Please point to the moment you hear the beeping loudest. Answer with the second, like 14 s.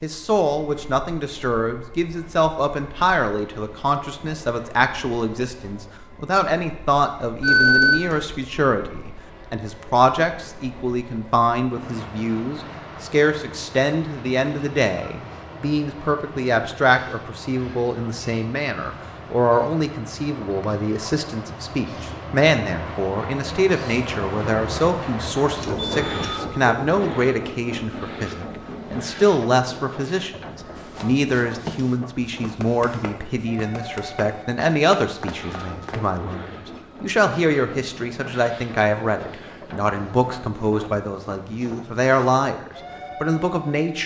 8 s.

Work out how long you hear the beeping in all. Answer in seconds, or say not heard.
2 s.